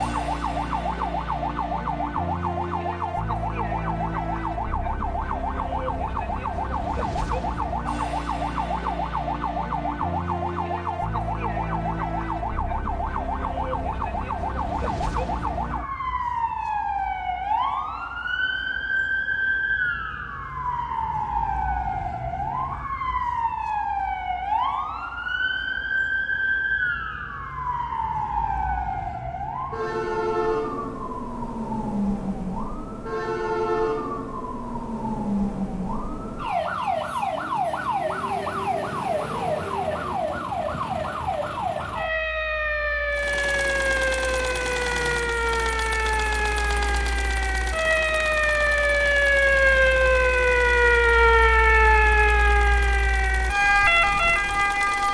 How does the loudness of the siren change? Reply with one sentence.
The loudness of the siren goes up.